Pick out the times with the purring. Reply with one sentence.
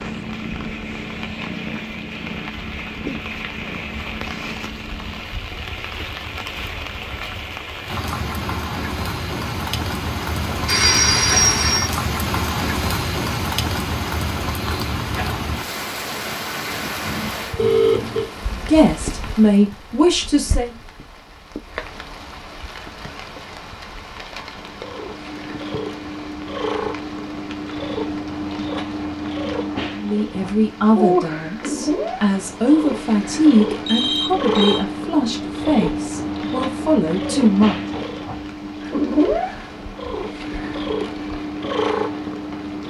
You can hear the purring from 0.0 to 5.2 s and from 24.5 to 42.8 s.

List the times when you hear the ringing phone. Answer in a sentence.
The ringing phone can be heard from 10.4 to 11.8 s, from 17.6 to 18.2 s and from 33.9 to 34.9 s.